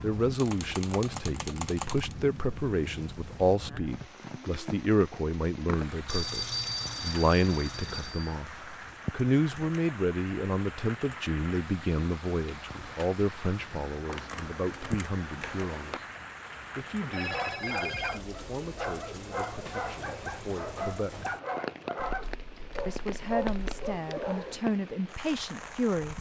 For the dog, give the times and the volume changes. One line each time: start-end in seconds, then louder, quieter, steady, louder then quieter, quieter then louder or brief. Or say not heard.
17.0-24.6 steady.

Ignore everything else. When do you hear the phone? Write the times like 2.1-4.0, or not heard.
6.0-8.3, 17.1-18.2.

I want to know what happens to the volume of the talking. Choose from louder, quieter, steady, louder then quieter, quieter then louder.
quieter then louder.